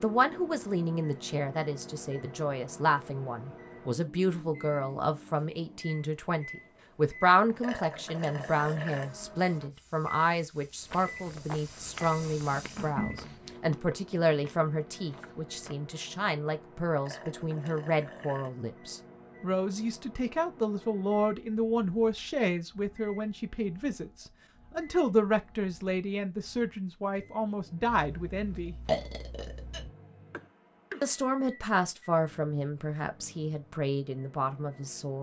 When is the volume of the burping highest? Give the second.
29 s.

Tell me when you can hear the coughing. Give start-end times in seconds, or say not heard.
30.3-31.1.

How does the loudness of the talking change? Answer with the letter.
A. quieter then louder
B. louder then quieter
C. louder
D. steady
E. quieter
D.